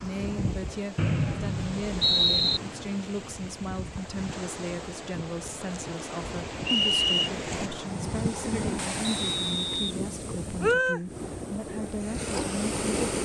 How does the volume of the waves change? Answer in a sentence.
The loudness of the waves goes up.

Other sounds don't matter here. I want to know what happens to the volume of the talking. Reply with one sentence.
The volume of the talking stays about the same.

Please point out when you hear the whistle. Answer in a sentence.
You can hear the whistle from 0.9 to 2.6 s, from 6.7 to 7.3 s and from 9.0 to 9.9 s.